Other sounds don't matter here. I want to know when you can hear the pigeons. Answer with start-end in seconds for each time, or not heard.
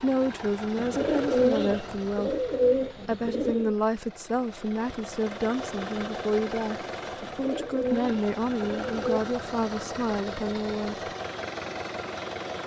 0.8-3.8, 7.2-9.2.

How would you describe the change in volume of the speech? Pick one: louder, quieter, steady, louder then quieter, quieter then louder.
steady.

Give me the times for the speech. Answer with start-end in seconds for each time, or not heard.
0.0-11.1.